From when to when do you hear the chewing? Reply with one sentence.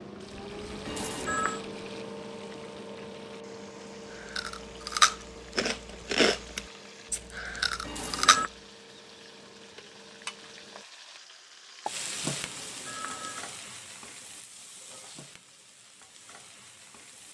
The chewing can be heard from 4.1 to 8.4 s.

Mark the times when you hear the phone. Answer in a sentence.
The phone can be heard from 0.8 to 1.6 s, from 7.8 to 8.5 s and from 12.4 to 13.5 s.